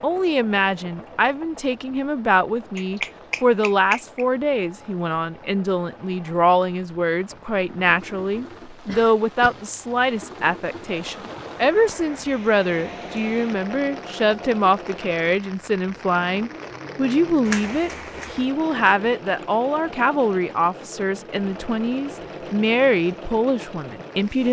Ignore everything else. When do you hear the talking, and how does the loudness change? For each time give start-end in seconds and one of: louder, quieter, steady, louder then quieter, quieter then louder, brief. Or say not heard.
0.0-24.4 steady.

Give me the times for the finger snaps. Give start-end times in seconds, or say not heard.
2.8-4.2, 17.4-18.4.